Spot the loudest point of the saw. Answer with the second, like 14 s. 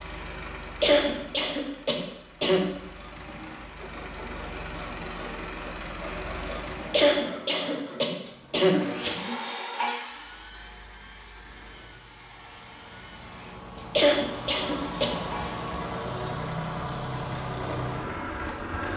10 s.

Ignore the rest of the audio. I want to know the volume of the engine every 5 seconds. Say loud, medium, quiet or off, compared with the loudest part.
medium, medium, medium, loud.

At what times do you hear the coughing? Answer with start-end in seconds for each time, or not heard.
0.8-2.6, 6.9-9.3, 13.9-15.2.